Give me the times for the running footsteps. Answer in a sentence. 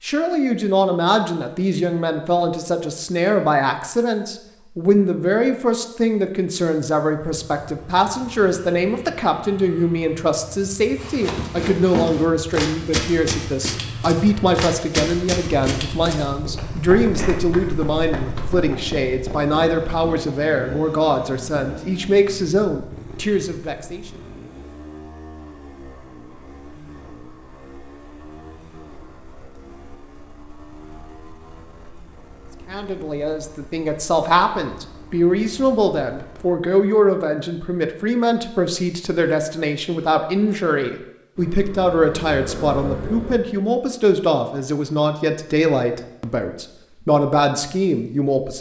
The running footsteps can be heard from 10.9 to 18.8 s.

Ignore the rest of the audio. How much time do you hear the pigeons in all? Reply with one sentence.
The pigeons can't be heard in this clip.